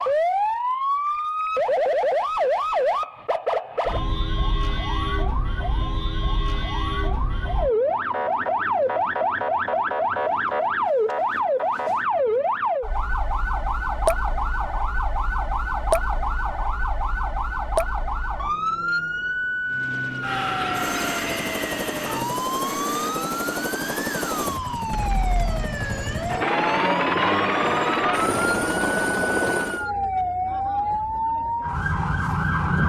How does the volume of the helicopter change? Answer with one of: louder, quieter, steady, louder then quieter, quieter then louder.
louder.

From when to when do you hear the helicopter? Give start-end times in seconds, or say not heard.
19.6-29.9.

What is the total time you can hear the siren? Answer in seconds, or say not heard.
33 s.